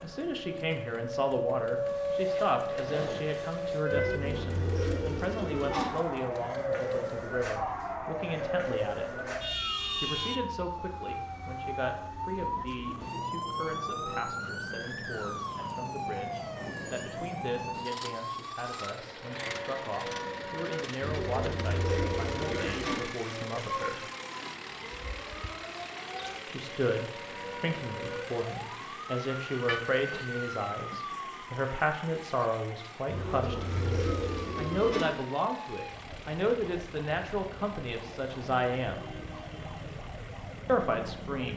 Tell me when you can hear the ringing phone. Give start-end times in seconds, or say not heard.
29.6-30.2.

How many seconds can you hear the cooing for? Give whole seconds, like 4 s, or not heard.
6 s.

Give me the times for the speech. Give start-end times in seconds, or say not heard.
0.0-9.2, 10.0-24.0, 26.4-39.0, 40.6-41.5.